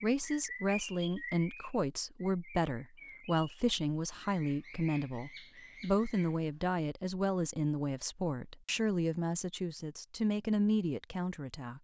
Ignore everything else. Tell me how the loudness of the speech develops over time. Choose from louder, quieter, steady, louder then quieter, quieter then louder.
steady.